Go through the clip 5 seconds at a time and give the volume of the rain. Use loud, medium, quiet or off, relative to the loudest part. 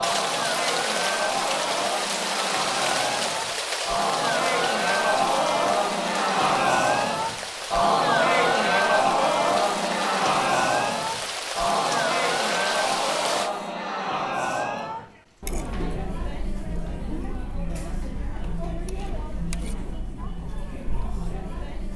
loud, medium, loud, off, off.